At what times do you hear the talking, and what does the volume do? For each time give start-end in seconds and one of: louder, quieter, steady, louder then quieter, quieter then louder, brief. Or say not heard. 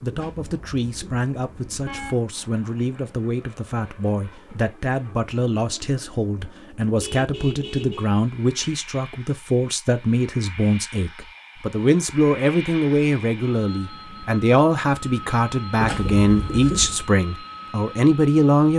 0.0-18.7 louder.